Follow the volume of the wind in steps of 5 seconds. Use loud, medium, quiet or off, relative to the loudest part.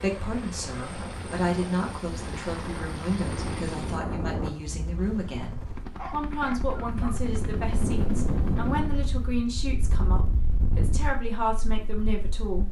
medium, loud, medium.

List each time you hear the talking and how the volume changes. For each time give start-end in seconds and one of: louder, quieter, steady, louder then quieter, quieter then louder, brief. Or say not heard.
0.0-12.6 steady.